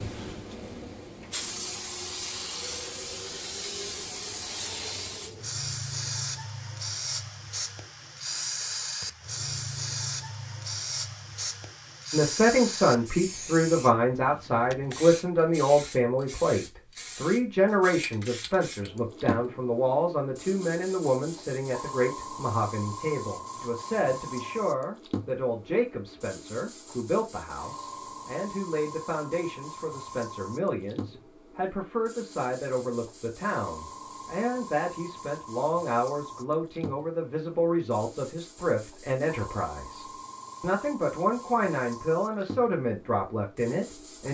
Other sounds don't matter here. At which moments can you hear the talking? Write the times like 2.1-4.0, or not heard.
12.1-44.2.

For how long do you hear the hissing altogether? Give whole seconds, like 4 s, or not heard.
44 s.